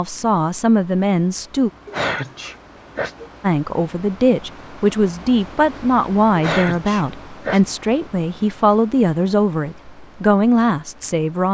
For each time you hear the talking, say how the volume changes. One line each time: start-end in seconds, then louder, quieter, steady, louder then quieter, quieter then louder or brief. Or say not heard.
0.0-1.7 brief
3.4-11.4 steady.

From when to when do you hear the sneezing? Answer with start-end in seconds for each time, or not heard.
1.9-3.3, 6.3-7.6.